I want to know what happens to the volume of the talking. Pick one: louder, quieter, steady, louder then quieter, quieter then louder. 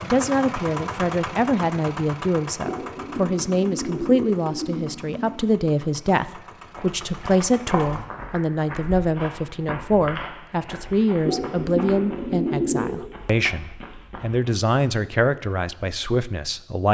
steady.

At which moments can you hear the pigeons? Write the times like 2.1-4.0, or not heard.
2.6-5.3, 11.2-12.9.